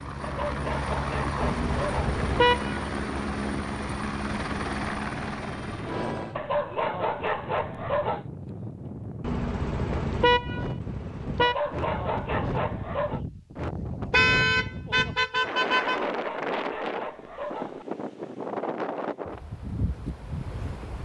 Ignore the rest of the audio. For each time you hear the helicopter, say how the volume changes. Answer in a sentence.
You can hear the helicopter from 0.0 to 6.4 s, at a steady volume.